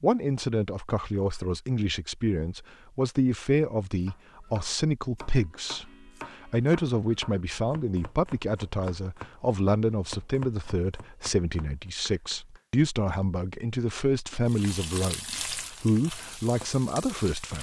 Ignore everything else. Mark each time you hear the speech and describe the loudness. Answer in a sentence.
You can hear the speech from 0.0 to 17.5 s, at a steady volume.